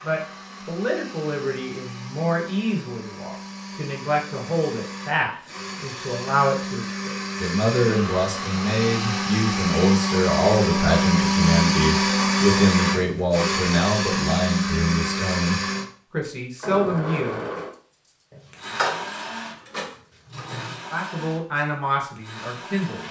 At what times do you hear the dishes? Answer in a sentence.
The dishes can be heard from 18.3 to 20.8 s.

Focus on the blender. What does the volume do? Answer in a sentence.
The volume of the blender goes up, then down.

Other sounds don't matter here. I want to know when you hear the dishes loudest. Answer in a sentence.
The volume of the dishes peaks at 19 seconds.